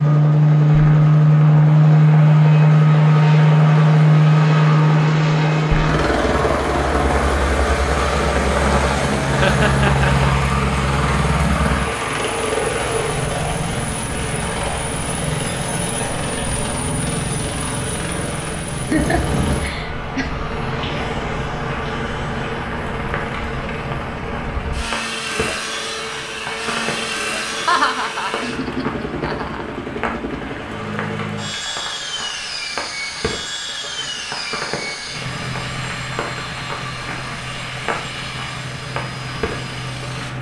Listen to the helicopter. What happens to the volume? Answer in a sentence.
The volume of the helicopter goes down.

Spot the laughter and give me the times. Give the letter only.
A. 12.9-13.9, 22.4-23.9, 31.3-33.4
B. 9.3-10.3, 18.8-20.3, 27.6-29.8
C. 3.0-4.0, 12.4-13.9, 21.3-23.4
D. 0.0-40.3
B.